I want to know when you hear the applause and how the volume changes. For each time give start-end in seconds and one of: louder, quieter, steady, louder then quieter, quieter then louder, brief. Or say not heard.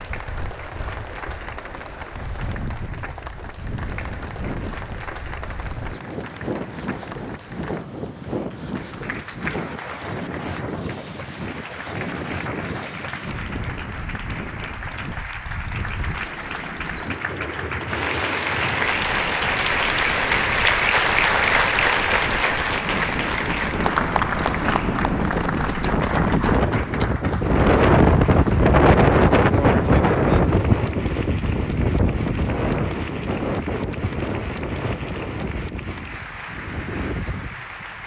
0.0-38.0 louder then quieter.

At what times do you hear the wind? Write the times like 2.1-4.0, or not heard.
0.0-38.0.